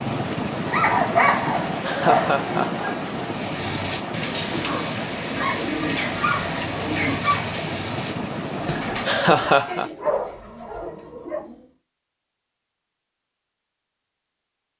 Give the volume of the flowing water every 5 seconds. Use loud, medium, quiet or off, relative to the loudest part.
loud, loud, off.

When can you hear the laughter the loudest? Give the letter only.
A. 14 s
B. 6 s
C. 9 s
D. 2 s
C.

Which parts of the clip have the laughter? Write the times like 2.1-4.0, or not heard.
1.4-3.0, 8.7-9.9.